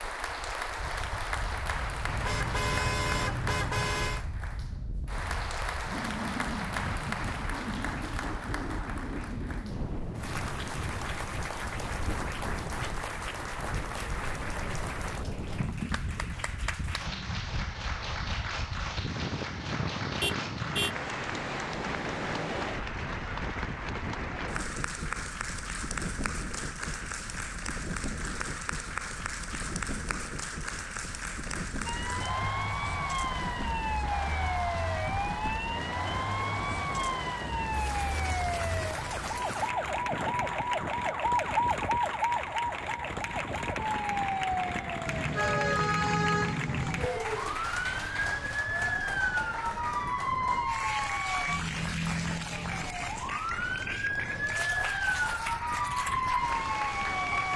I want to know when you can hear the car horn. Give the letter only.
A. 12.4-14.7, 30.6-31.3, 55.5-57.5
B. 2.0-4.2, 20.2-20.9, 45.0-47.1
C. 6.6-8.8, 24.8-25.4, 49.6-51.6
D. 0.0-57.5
B.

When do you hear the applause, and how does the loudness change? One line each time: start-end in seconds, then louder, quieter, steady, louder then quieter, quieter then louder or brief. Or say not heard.
0.0-57.5 steady.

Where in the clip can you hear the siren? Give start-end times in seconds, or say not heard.
31.9-57.5.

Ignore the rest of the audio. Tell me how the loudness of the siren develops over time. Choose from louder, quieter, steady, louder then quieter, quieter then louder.
steady.